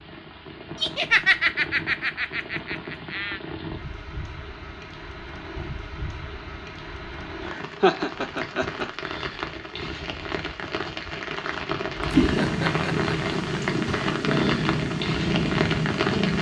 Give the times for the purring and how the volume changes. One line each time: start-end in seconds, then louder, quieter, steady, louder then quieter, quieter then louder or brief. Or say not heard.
12.1-16.3 steady.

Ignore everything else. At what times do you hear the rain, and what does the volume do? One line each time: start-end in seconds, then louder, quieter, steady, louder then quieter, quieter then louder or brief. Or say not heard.
0.0-16.3 louder.